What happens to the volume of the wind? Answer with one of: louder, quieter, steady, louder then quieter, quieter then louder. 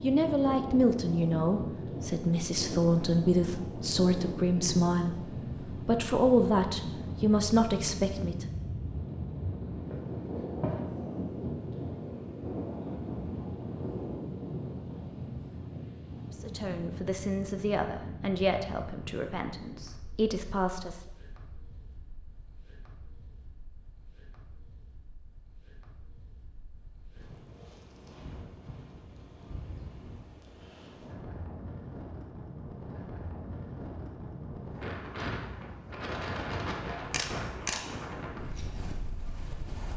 quieter then louder.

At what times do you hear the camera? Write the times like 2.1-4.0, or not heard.
37.0-38.4.